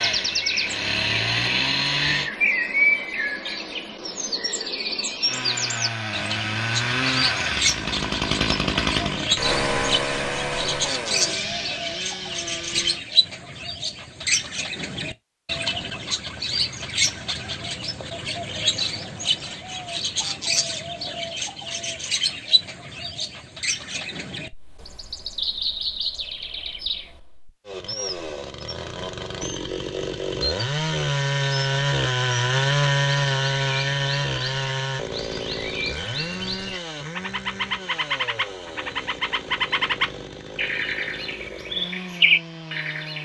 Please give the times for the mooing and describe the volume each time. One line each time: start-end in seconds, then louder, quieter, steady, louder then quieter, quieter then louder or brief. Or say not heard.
not heard.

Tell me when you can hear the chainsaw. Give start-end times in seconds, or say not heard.
0.0-2.3, 5.2-13.0, 27.6-43.2.